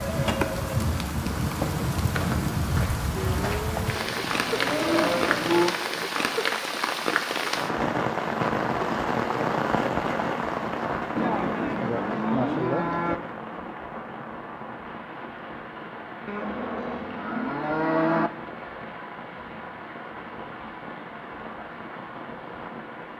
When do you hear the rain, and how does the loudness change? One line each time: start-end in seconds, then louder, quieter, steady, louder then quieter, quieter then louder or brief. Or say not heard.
0.0-23.1 quieter.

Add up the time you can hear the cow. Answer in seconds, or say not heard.
7 s.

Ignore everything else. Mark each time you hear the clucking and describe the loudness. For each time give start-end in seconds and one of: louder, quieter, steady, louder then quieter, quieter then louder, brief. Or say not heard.
not heard.